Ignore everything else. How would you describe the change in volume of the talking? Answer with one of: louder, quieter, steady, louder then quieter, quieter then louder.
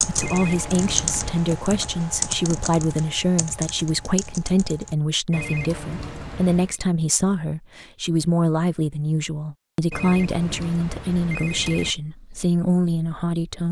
steady.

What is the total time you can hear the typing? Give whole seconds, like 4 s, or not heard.
5 s.